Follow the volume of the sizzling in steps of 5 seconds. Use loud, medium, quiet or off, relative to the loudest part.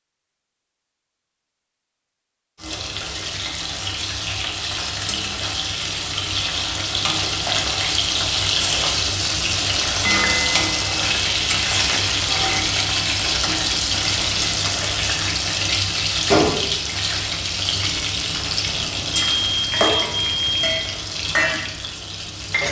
medium, loud, loud, loud, medium.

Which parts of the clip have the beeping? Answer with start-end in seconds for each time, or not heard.
18.6-20.9.